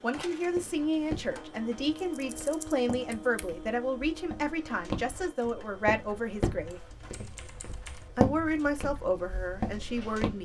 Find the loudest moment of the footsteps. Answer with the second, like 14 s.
8 s.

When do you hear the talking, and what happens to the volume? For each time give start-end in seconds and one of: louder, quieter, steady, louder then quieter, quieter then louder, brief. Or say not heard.
0.0-6.8 steady
8.0-10.4 brief.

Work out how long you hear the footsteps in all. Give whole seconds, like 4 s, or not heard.
10 s.